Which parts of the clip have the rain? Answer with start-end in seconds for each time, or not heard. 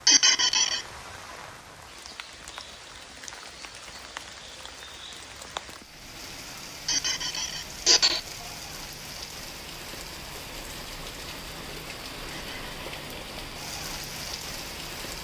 0.0-15.1.